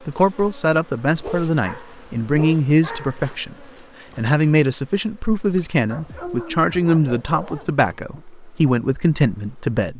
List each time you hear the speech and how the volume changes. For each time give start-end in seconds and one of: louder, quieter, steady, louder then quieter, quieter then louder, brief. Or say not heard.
0.1-9.9 steady.